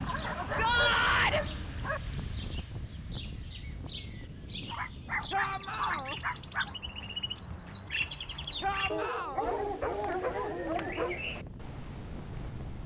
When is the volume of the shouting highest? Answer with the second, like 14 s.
1 s.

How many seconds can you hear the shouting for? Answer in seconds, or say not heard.
3 s.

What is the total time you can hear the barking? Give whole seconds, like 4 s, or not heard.
6 s.